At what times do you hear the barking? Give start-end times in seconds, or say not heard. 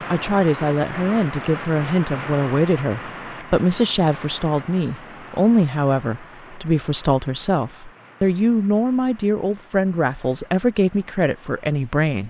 not heard.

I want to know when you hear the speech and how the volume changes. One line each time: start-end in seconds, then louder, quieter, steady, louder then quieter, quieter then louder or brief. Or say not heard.
0.1-12.2 steady.